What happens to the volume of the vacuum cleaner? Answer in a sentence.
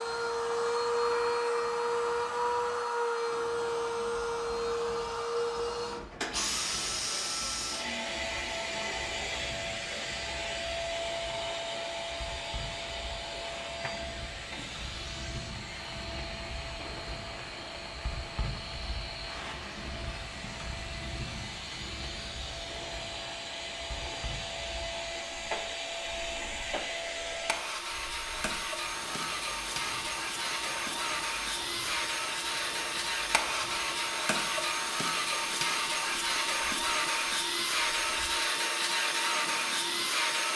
The volume of the vacuum cleaner goes down, then up.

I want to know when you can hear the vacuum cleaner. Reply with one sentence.
The vacuum cleaner can be heard from 0.0 to 40.5 s.